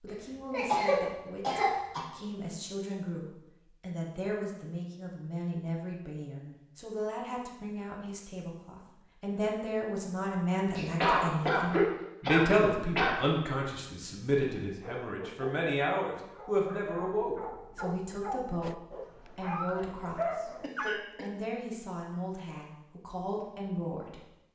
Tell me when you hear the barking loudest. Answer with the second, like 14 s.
20 s.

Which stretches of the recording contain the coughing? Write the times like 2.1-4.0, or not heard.
0.5-2.0, 10.8-13.2, 20.6-21.3.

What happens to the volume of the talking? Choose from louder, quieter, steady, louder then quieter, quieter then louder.
louder then quieter.